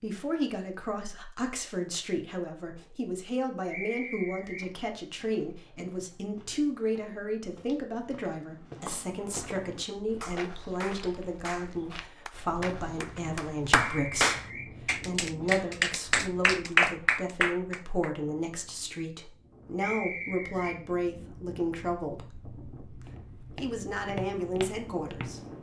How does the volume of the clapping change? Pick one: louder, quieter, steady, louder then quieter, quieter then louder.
louder.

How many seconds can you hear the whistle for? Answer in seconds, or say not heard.
3 s.